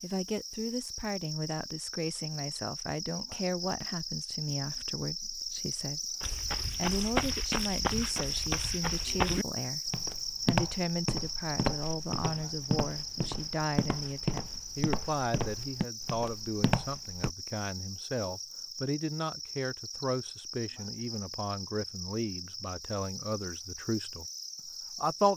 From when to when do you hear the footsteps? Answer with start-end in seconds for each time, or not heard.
6.2-17.3.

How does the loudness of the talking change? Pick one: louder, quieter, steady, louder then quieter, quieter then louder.
steady.